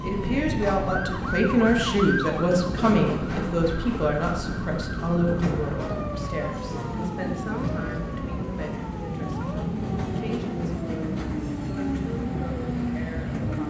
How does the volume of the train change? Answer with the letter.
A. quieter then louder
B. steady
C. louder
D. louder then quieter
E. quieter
B.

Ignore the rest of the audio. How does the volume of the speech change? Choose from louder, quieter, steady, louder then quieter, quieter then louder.
quieter.